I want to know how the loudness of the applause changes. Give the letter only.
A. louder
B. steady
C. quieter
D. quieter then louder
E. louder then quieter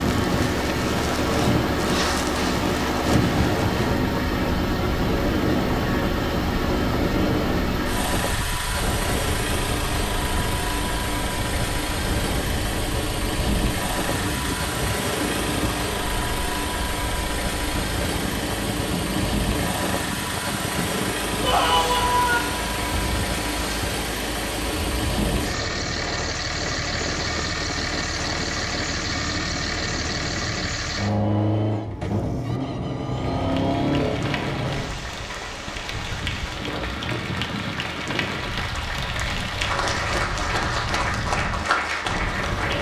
A.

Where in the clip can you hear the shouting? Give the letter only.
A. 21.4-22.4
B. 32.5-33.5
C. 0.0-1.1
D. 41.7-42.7
A.